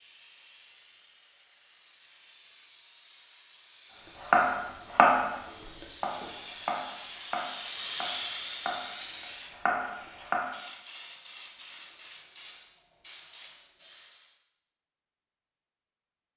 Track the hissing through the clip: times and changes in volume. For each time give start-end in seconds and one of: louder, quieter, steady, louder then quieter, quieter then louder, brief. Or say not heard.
0.0-14.4 louder then quieter.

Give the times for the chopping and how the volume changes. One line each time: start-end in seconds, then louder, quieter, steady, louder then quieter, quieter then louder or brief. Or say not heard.
4.3-10.4 quieter then louder.